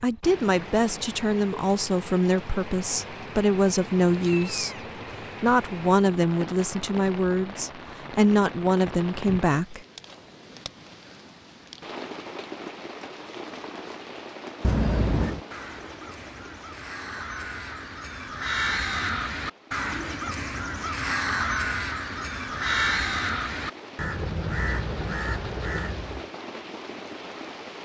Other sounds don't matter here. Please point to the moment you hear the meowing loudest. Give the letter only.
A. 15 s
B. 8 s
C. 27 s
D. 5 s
A.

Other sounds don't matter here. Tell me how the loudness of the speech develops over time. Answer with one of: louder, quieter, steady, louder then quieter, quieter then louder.
steady.